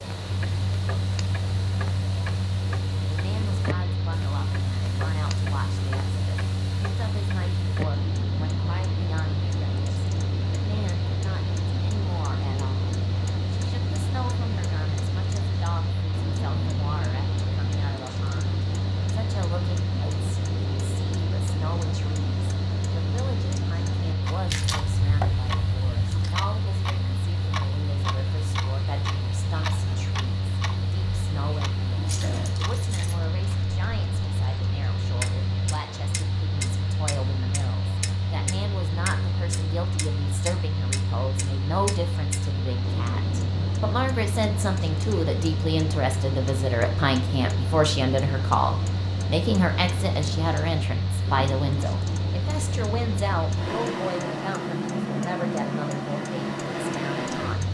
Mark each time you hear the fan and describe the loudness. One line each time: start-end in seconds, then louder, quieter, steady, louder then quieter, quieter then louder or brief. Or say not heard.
0.0-57.6 steady.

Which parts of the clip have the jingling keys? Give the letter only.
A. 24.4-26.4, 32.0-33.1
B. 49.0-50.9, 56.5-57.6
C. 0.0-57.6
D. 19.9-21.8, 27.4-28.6
A.